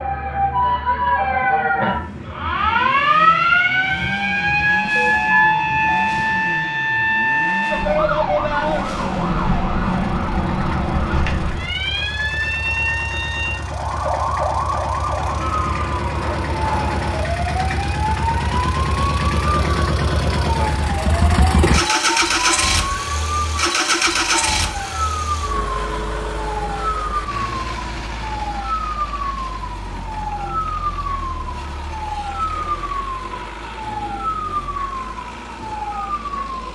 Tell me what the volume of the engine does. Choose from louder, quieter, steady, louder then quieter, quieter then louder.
louder then quieter.